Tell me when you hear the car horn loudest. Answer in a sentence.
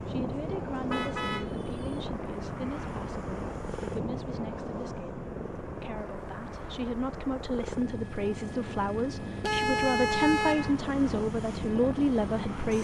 The volume of the car horn peaks at 10 seconds.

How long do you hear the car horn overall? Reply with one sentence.
You can hear the car horn for 2 seconds altogether.